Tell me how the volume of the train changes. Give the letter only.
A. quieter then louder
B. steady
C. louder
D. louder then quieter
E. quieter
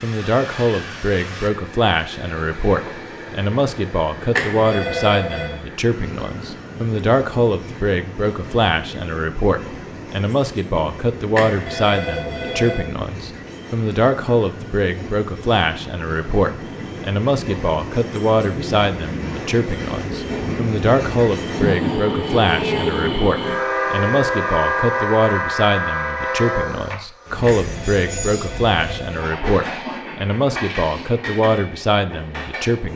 D.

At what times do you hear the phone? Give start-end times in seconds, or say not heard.
4.3-5.5, 11.3-12.9, 27.4-29.2.